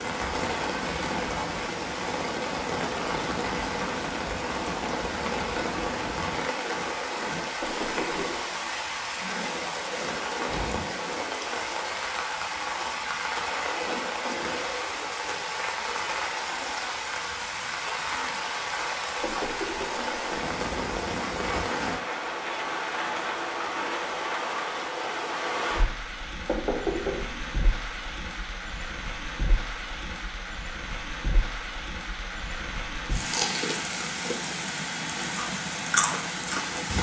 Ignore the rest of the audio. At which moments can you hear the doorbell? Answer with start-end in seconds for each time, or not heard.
not heard.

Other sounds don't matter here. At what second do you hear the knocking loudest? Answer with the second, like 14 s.
27 s.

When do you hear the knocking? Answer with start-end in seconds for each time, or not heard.
7.6-8.3, 19.2-20.2, 26.4-27.6.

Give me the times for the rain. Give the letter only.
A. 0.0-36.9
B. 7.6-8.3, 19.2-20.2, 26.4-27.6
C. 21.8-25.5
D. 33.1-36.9
A.